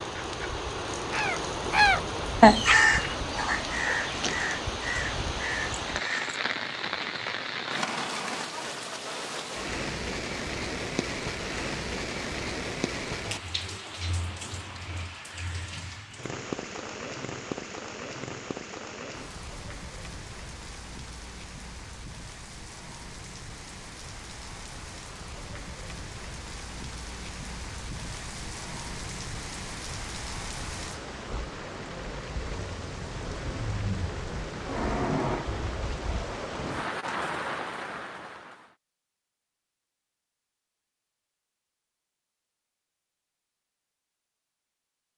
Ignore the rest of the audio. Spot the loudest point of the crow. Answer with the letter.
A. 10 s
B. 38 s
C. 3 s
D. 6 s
C.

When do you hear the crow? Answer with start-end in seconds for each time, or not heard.
1.1-6.4.